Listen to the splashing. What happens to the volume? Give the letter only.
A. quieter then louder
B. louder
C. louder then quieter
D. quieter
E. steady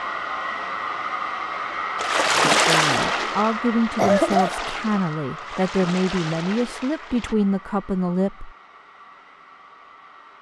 D.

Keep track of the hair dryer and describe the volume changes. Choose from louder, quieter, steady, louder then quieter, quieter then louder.
quieter.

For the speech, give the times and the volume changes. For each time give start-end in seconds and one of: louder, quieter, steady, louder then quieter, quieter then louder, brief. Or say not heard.
2.6-8.5 steady.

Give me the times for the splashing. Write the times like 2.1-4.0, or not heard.
1.9-7.3.